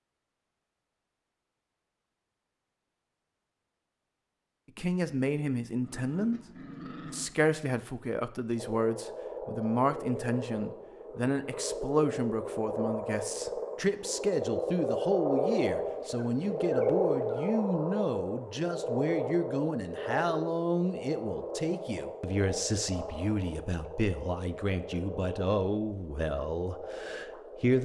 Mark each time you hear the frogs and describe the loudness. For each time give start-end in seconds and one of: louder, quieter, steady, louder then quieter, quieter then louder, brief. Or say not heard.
8.6-27.8 louder then quieter.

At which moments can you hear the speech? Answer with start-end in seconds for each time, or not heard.
4.8-6.4, 7.0-27.8.